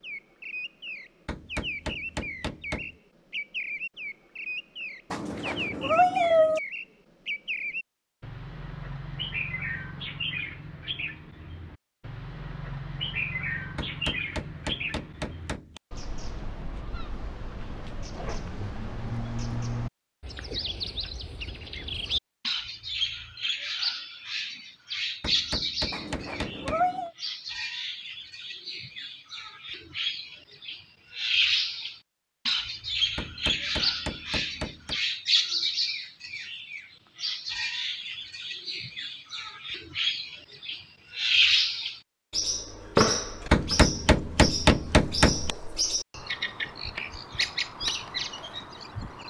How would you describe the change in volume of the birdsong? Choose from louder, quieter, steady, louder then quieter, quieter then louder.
louder.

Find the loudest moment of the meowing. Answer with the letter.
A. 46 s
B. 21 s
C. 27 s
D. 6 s
D.